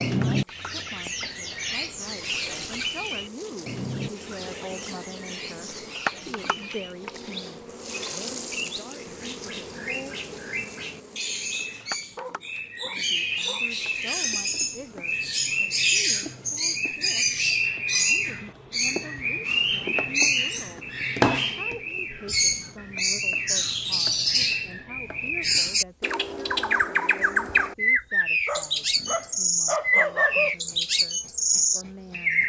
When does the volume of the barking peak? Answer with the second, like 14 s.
30 s.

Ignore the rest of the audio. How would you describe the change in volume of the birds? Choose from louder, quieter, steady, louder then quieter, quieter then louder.
louder.